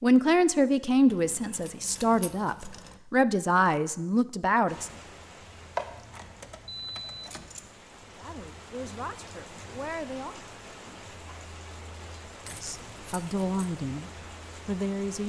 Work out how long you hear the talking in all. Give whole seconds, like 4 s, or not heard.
10 s.